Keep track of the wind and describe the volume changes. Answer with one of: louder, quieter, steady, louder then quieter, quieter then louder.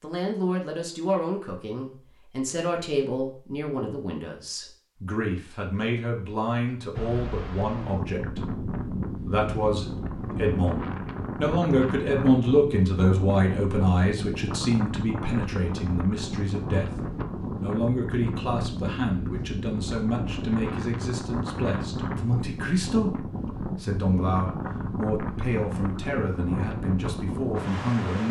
steady.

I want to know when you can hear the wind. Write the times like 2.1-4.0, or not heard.
6.9-28.2.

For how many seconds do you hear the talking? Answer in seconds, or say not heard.
28 s.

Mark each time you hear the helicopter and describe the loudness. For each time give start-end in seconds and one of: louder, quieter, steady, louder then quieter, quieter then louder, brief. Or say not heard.
not heard.